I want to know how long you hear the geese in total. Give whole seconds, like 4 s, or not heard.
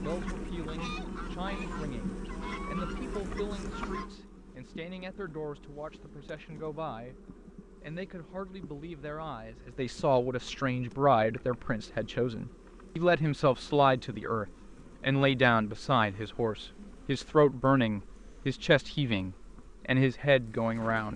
4 s.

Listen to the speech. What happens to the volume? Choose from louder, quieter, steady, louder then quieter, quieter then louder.
louder.